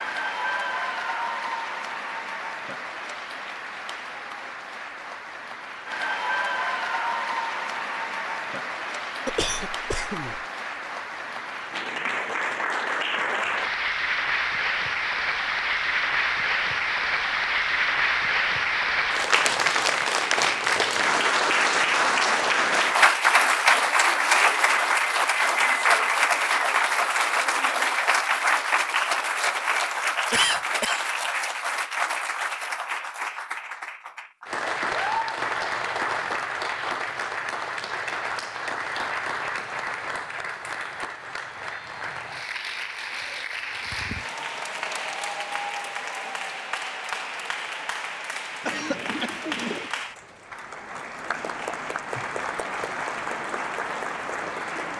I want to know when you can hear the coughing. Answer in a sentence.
The coughing can be heard from 9.2 to 10.4 s, from 30.3 to 31.1 s and from 48.6 to 49.9 s.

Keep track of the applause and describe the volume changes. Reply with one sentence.
The volume of the applause goes up, then down.